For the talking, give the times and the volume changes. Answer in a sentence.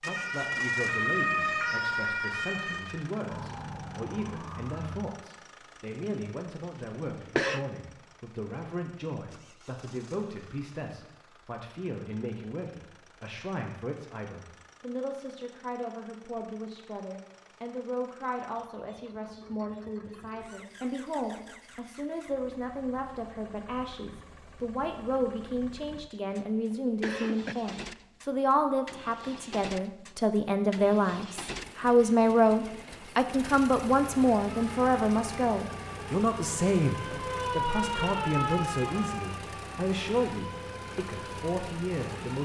You can hear the talking from 0.0 to 42.3 s, getting louder.